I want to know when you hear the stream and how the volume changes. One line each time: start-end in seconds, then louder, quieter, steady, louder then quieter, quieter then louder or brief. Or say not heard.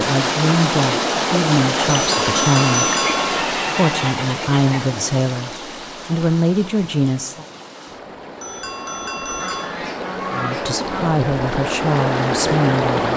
0.0-13.1 quieter then louder.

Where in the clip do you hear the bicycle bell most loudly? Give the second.
3 s.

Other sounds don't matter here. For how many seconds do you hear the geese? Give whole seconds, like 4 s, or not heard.
4 s.